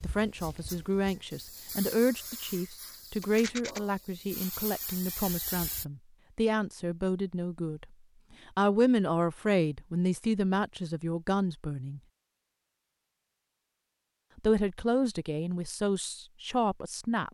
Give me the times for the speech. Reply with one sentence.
You can hear the speech from 0.0 to 7.8 s, from 8.6 to 12.0 s and from 14.3 to 17.2 s.